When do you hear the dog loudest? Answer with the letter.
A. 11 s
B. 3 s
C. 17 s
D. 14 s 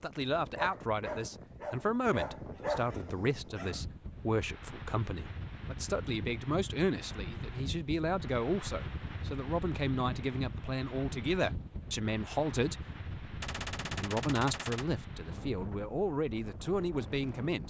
B.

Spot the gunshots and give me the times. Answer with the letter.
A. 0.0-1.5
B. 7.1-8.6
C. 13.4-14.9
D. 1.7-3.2
C.